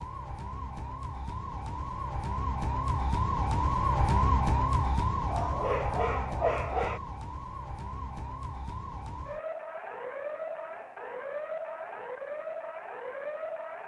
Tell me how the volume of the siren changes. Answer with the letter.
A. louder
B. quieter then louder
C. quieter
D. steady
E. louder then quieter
E.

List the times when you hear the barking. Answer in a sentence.
The barking can be heard from 5.2 to 7.0 s.